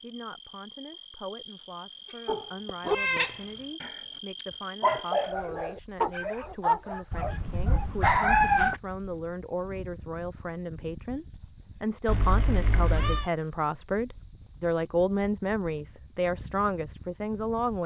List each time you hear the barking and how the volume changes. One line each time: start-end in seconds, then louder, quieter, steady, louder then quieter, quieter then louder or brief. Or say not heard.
2.2-3.2 brief
3.8-8.4 quieter.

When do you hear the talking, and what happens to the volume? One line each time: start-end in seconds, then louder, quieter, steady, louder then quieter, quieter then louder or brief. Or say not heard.
0.0-17.8 louder.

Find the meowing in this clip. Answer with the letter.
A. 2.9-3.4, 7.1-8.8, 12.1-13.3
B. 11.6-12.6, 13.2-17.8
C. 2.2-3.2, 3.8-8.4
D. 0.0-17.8
A.